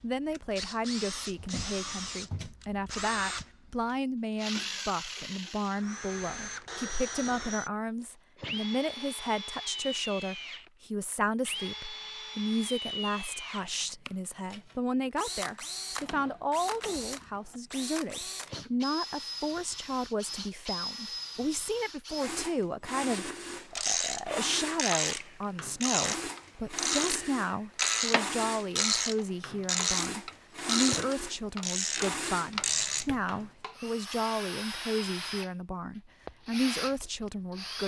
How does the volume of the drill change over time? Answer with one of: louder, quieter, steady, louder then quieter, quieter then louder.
steady.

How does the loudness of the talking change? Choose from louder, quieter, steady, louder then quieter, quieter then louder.
steady.